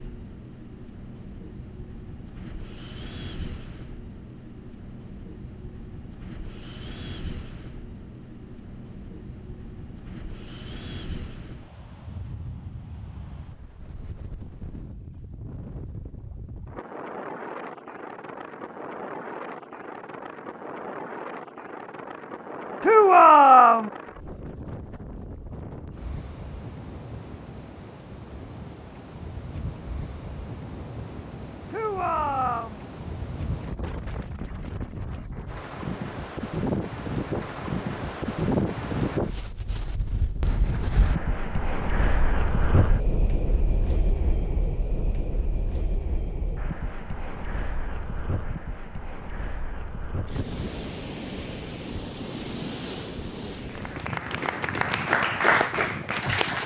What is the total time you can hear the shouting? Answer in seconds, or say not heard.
2 s.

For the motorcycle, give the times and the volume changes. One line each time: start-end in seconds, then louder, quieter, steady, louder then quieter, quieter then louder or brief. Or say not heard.
not heard.